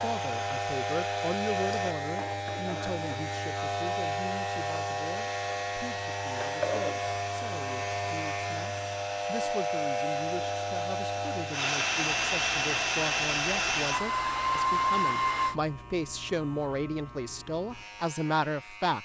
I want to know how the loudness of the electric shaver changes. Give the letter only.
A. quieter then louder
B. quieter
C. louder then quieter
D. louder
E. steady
B.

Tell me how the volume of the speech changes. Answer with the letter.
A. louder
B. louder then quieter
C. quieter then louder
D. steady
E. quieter
C.